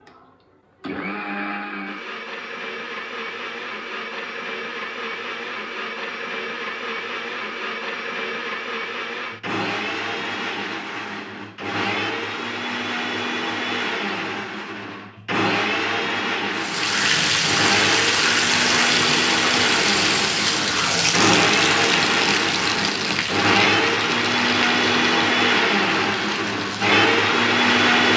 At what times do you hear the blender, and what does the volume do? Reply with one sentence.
You can hear the blender from 0.0 to 28.1 s, getting louder.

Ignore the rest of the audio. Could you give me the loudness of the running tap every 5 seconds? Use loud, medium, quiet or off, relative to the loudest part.
off, off, off, loud, loud, medium.